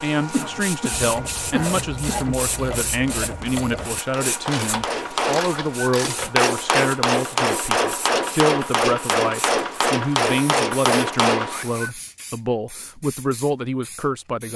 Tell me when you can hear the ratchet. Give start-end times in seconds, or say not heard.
0.9-6.3.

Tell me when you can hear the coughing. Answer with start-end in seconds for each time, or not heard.
0.3-2.4.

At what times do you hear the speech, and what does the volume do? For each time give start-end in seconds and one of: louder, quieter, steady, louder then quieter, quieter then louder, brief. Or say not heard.
0.0-14.5 steady.